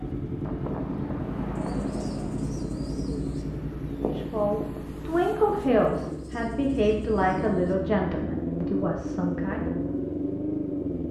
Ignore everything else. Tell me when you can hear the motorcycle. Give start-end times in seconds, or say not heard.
0.0-11.0.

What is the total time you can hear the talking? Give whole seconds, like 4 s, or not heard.
6 s.